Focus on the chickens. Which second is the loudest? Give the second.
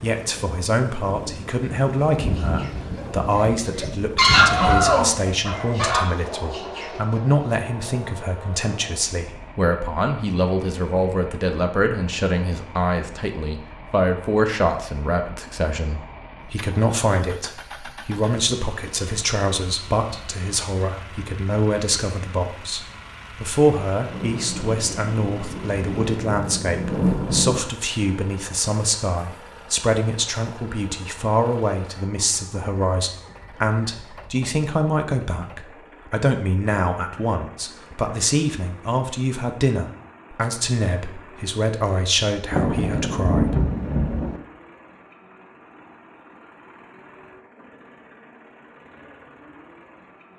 4 s.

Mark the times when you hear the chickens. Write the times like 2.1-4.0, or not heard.
2.1-7.5.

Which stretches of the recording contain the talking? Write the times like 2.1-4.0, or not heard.
0.0-43.7.